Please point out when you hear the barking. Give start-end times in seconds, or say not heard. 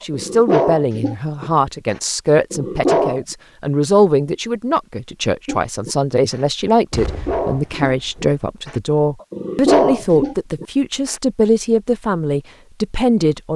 0.1-3.2, 5.5-11.2.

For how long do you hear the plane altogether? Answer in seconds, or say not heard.
not heard.